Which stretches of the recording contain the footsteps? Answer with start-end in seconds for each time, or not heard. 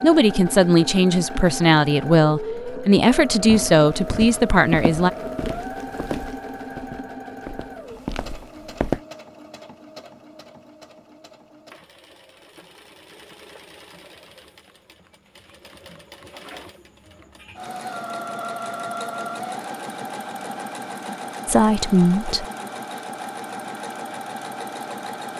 3.5-9.0.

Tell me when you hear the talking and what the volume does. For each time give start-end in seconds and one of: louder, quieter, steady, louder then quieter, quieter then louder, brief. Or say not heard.
0.0-5.1 steady
21.4-22.4 brief.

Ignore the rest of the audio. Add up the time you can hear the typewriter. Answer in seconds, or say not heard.
not heard.